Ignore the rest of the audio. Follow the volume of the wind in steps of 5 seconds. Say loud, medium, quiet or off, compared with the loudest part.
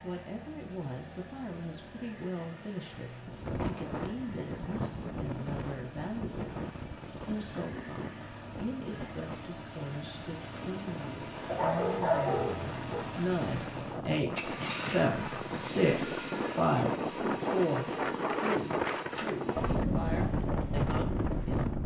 medium, medium, medium, loud, loud.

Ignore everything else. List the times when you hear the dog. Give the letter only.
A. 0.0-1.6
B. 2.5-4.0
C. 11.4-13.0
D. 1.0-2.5
C.